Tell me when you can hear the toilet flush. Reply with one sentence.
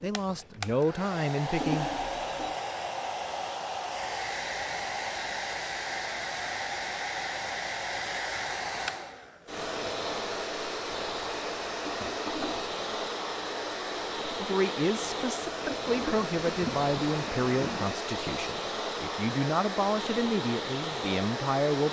The toilet flush can be heard from 1.6 to 2.5 s, from 11.8 to 12.7 s and from 15.6 to 18.1 s.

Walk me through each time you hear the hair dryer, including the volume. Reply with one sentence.
You can hear the hair dryer from 0.0 to 21.8 s, at a steady volume.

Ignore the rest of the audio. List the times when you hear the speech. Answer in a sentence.
You can hear the speech from 0.0 to 1.9 s and from 14.4 to 21.8 s.